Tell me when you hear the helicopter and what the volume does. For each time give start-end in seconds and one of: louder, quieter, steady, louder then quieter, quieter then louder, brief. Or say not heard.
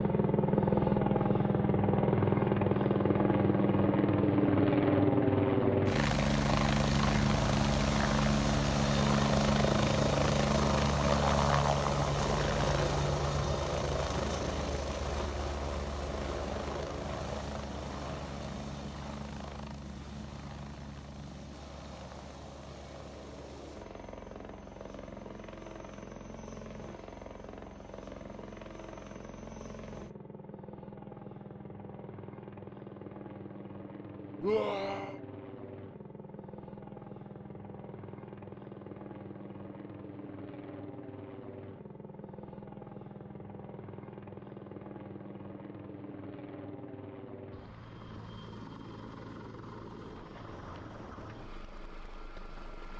0.0-52.9 quieter.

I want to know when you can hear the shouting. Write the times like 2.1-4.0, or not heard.
34.4-35.2.